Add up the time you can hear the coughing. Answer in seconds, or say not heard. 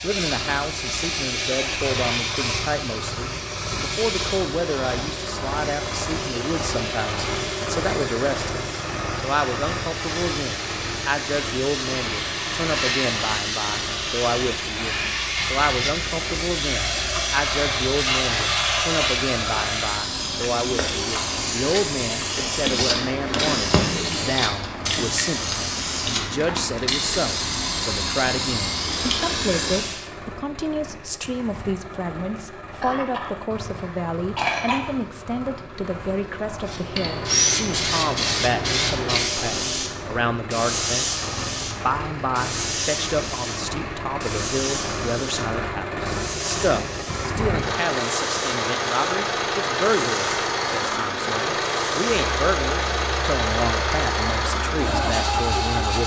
2 s.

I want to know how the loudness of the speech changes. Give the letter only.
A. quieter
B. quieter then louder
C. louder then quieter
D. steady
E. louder
D.